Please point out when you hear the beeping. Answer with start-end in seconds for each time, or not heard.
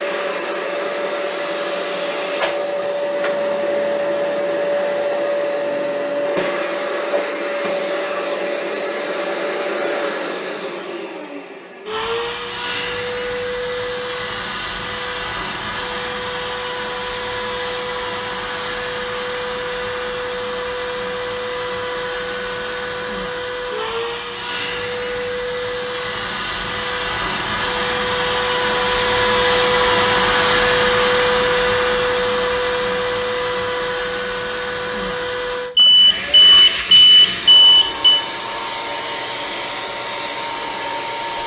35.8-38.2.